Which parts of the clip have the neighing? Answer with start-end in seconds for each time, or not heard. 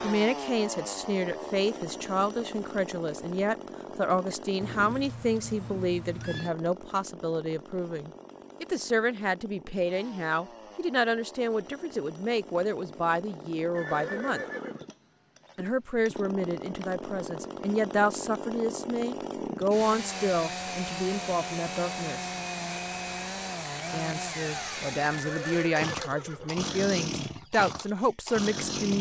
4.6-6.5, 13.7-14.8, 25.1-26.6.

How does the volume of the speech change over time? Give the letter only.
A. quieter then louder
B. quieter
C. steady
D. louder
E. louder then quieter
C.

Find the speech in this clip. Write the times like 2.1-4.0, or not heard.
0.0-14.4, 15.6-22.3, 23.9-28.9.